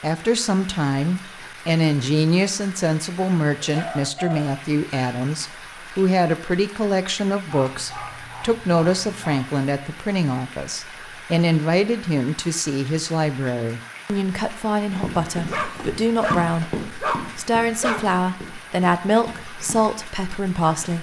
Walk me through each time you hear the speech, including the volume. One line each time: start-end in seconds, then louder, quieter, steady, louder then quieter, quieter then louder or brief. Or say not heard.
0.0-20.9 steady.